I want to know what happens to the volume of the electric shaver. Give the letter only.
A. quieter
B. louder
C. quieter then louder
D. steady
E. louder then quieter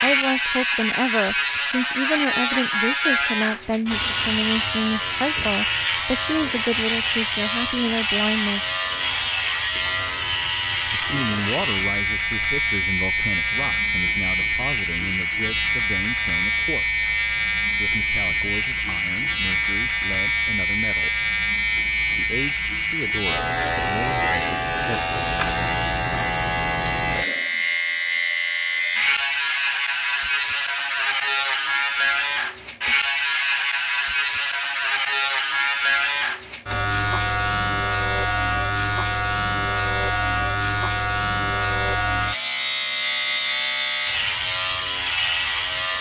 D.